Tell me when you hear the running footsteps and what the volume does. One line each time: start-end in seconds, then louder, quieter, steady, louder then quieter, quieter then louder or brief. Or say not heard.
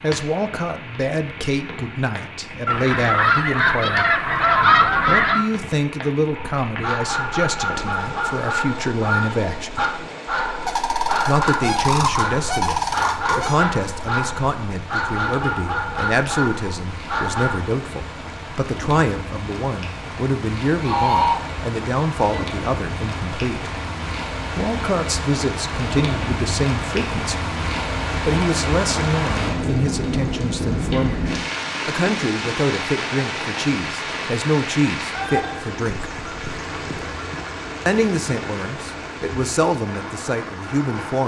not heard.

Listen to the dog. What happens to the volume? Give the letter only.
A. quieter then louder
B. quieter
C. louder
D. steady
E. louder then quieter
D.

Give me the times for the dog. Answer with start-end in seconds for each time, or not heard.
6.3-17.6.